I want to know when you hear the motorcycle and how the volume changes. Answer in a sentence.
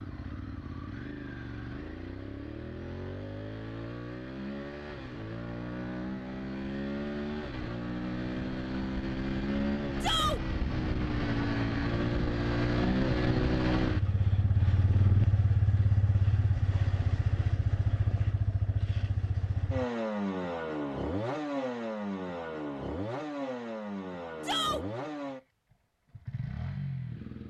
You can hear the motorcycle from 0.0 to 27.4 s, getting louder then quieter.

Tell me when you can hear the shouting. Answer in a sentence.
You can hear the shouting from 10.0 to 10.4 s and from 24.4 to 24.9 s.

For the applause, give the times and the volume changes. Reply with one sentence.
You can't hear the applause here.